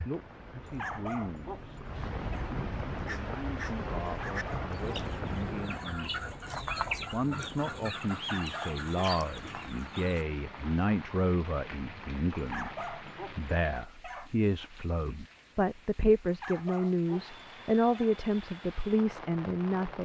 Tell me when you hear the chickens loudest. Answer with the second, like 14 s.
7 s.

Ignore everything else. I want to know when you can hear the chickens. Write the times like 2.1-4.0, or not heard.
2.9-10.2.